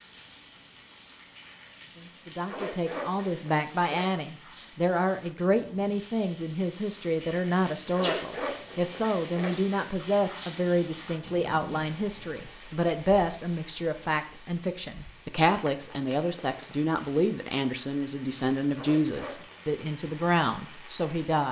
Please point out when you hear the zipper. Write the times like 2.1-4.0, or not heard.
2.5-4.1, 7.9-9.6, 18.8-19.6.